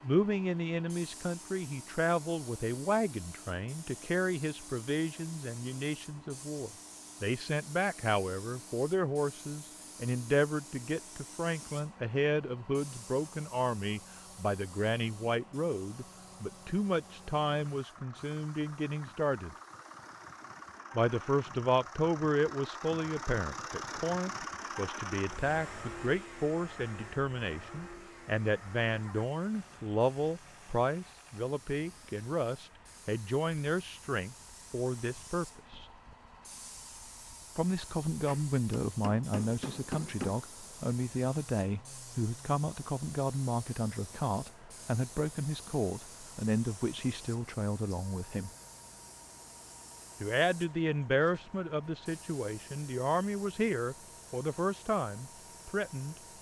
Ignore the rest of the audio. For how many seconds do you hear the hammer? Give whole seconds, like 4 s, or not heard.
2 s.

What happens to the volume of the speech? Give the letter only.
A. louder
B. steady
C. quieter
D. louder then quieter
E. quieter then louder
B.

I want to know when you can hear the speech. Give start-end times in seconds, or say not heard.
0.0-19.6, 20.9-35.9, 37.5-48.5, 50.2-56.1.